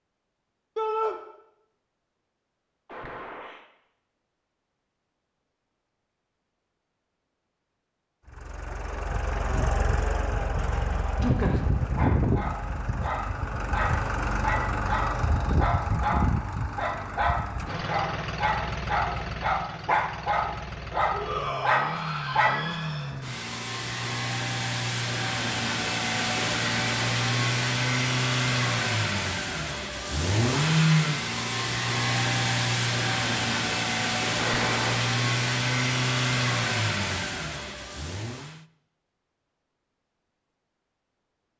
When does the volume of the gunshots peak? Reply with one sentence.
The volume of the gunshots peaks at 35 seconds.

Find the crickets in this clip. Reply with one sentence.
The crickets can't be heard in this clip.